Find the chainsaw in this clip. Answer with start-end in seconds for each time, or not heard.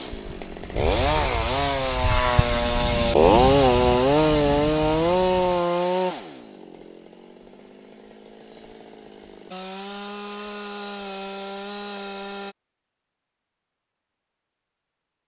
0.0-12.6.